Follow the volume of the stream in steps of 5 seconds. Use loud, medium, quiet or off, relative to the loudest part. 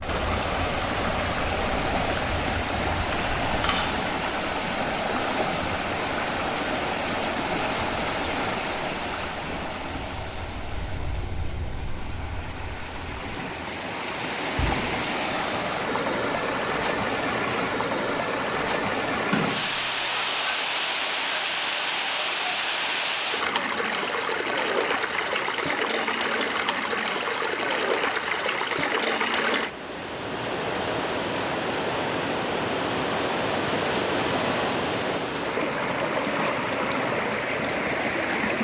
loud, loud, medium, loud, loud, loud, loud, loud.